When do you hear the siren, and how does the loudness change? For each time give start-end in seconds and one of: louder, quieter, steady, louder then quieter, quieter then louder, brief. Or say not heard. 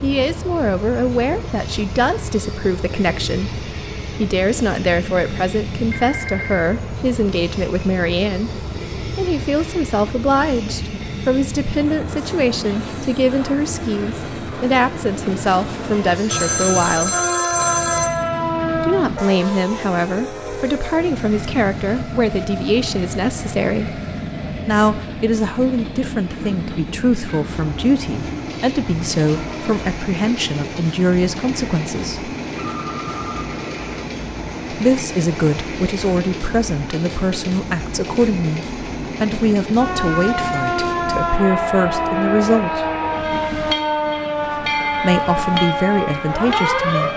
17.1-18.9 brief
39.8-47.1 steady.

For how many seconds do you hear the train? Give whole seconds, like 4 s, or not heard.
47 s.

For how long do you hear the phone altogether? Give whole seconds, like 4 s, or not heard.
4 s.